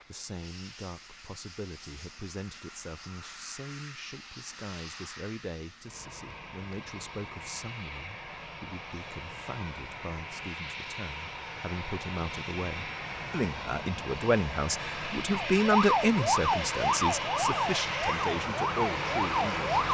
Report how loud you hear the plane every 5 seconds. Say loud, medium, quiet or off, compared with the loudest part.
quiet, medium, medium, loud.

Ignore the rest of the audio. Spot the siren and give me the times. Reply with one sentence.
The siren can be heard from 15.3 to 19.9 s.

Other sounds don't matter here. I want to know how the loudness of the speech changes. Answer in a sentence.
The loudness of the speech goes up.